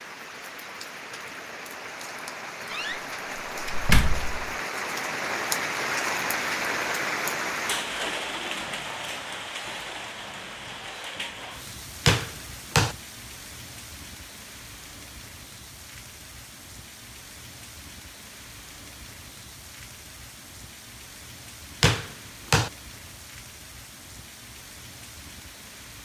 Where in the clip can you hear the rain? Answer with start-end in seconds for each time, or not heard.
0.0-25.9.